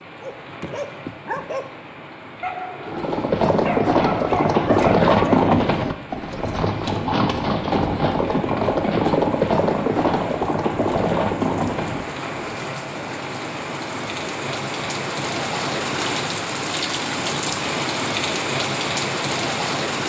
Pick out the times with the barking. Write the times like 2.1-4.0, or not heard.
0.2-5.4.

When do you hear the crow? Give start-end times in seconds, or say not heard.
not heard.